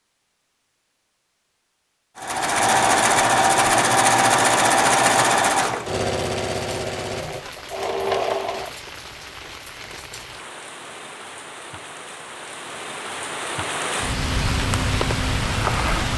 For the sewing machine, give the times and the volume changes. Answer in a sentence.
The sewing machine can be heard from 2.1 to 8.7 s, getting quieter.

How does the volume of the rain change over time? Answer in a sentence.
The loudness of the rain goes up.